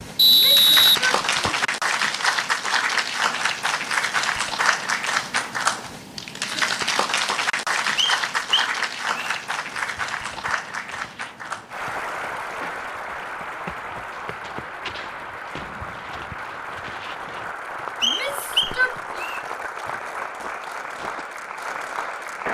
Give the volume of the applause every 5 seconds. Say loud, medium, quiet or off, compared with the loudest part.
loud, loud, medium, medium, medium.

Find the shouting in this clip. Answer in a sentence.
You can hear the shouting from 0.2 to 1.4 s and from 18.0 to 19.2 s.